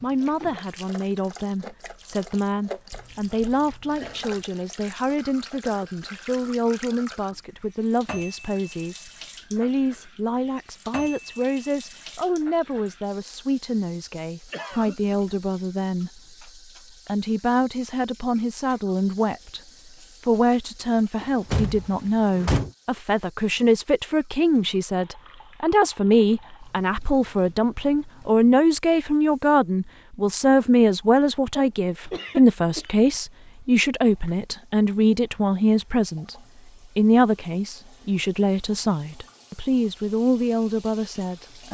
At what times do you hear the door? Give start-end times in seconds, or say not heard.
21.2-22.7.